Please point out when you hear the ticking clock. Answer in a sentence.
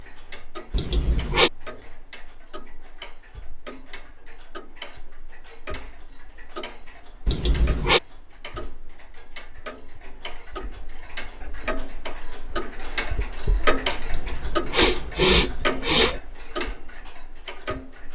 The ticking clock can be heard from 0.0 to 18.1 s.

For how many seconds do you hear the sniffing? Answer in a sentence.
The sniffing can be heard for 4 seconds in total.